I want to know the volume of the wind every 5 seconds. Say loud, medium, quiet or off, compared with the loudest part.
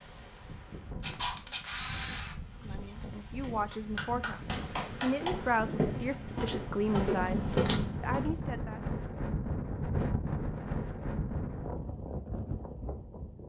medium, loud, loud.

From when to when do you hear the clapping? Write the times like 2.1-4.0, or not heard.
3.4-5.3.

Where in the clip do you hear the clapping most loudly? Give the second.
5 s.